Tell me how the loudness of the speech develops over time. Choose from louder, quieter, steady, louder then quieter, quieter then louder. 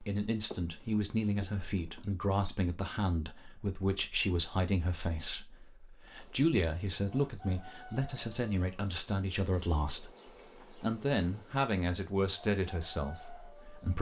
steady.